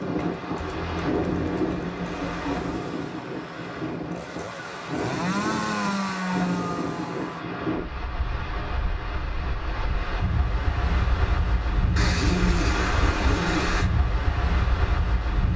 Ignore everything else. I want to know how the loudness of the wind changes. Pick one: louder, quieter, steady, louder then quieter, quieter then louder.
steady.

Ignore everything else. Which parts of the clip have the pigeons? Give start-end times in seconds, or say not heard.
0.6-2.6, 11.9-13.9.